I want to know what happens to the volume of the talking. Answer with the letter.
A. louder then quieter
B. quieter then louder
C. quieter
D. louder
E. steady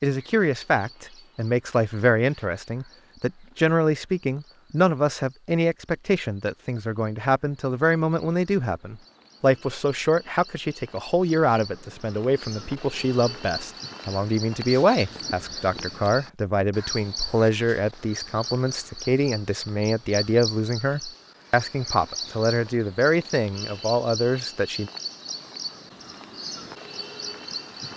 E.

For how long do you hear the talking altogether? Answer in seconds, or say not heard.
25 s.